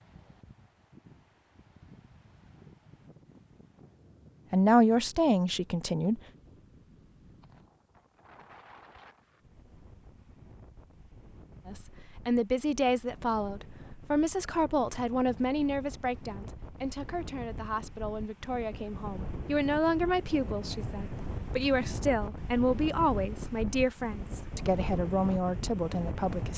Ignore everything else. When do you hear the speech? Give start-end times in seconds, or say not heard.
4.5-6.2, 11.7-26.5.